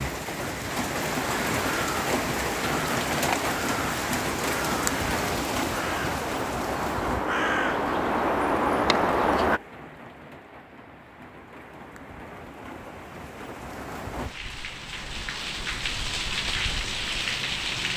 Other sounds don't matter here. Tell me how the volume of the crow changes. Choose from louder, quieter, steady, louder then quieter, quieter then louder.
louder.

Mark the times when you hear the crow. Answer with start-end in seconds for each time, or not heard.
1.1-9.6.